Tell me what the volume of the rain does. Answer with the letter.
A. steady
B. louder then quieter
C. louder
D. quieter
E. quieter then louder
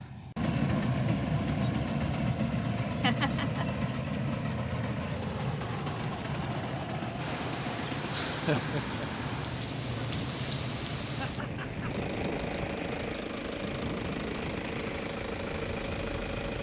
A.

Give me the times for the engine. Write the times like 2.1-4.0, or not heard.
0.0-16.5.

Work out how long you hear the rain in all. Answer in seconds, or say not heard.
9 s.